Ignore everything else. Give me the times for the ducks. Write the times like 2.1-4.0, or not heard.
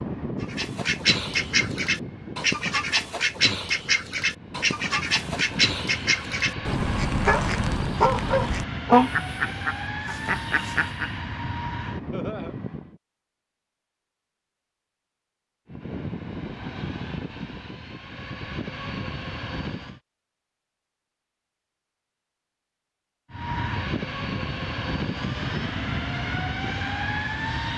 0.4-11.1.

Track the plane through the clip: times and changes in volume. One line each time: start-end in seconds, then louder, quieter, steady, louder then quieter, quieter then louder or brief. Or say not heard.
0.0-13.0 quieter then louder
15.7-20.0 quieter then louder
23.3-27.7 steady.